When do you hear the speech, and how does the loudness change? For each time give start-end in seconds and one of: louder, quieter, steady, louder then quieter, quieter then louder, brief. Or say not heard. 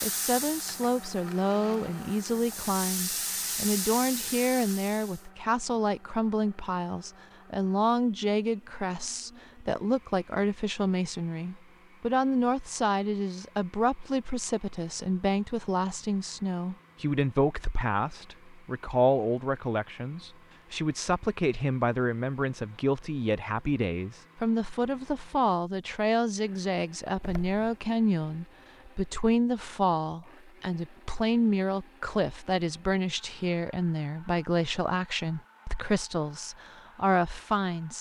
0.0-37.9 steady.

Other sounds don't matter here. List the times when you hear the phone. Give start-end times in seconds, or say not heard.
not heard.